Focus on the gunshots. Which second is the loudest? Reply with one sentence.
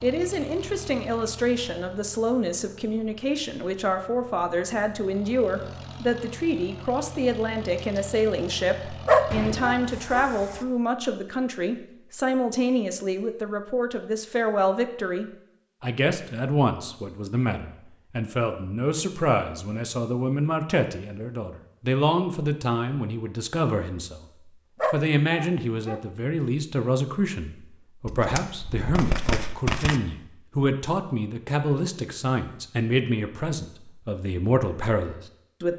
The volume of the gunshots peaks at 30 seconds.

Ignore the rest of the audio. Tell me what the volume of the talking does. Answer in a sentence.
The volume of the talking stays about the same.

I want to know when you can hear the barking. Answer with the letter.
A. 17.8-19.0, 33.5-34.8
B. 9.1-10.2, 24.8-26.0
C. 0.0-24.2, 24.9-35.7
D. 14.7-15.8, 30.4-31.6
B.